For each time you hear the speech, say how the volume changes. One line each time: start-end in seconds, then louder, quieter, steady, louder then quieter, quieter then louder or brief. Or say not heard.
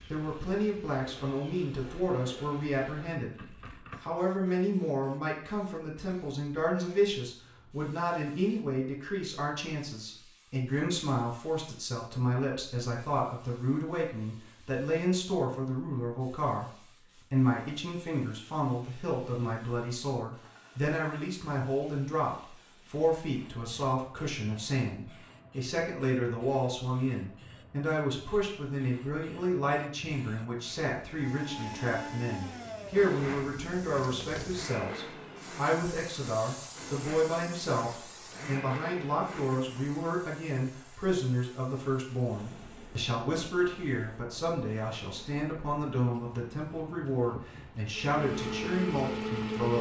0.1-49.7 steady.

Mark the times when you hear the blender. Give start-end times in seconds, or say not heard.
31.1-40.2, 47.9-49.7.